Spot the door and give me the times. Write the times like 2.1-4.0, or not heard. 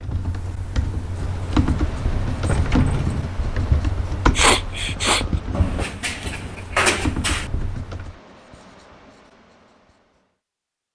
1.1-3.3, 5.5-7.5.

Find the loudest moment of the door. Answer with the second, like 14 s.
7 s.